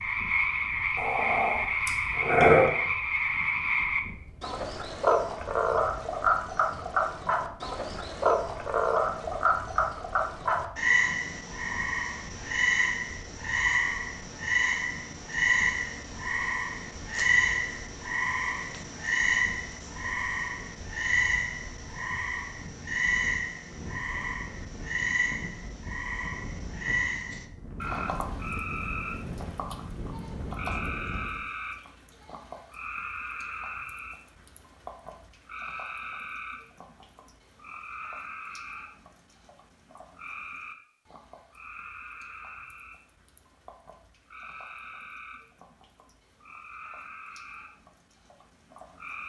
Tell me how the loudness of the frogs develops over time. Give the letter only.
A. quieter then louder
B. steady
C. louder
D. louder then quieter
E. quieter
E.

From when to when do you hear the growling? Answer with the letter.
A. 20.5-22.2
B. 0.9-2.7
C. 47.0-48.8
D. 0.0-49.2
B.